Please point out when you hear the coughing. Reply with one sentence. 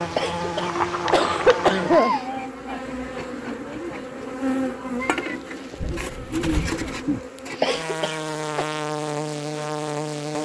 The coughing can be heard from 0.1 to 2.1 s and from 7.6 to 8.7 s.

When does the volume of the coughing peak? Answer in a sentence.
The loudest moment of the coughing is at 2 seconds.